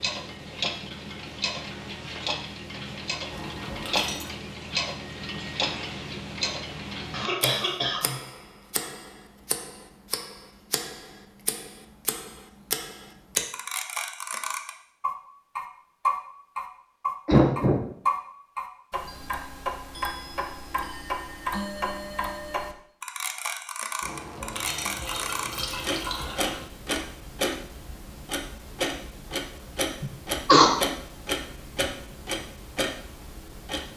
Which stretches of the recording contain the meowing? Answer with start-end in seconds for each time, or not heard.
not heard.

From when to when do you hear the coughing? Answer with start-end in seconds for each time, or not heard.
7.1-8.2, 17.2-17.9, 30.0-30.7.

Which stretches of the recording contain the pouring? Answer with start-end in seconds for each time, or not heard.
3.3-4.3, 24.0-26.6.